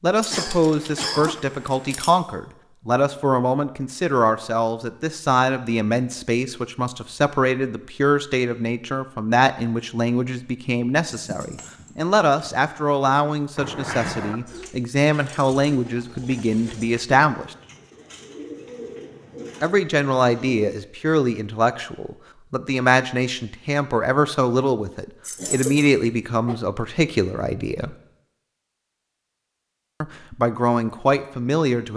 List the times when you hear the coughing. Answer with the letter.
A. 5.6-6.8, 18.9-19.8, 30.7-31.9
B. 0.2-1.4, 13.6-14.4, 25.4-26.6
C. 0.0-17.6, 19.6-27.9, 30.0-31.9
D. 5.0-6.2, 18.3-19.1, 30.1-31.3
B.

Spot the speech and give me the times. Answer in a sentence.
The speech can be heard from 0.0 to 17.6 s, from 19.6 to 27.9 s and from 30.0 to 31.9 s.